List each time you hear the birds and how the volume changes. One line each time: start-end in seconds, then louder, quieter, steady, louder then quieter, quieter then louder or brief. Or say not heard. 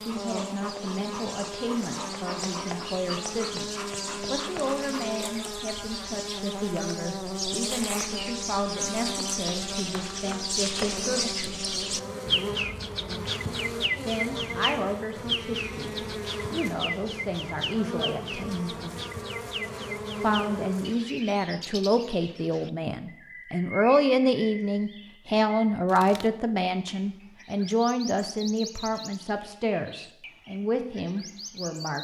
0.0-31.9 louder then quieter.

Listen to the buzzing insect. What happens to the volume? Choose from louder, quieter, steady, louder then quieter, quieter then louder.
steady.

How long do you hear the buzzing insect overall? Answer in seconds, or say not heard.
21 s.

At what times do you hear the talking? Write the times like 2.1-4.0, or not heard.
0.0-11.8, 14.1-18.8, 20.2-31.9.